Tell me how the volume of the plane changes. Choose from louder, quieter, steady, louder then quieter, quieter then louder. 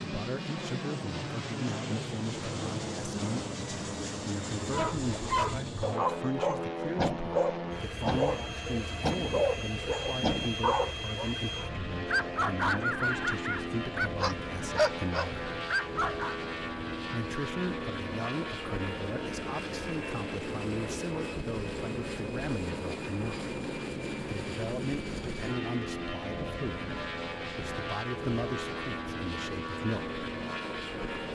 steady.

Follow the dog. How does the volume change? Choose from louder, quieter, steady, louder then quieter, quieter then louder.
steady.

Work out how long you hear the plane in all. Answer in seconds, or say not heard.
31 s.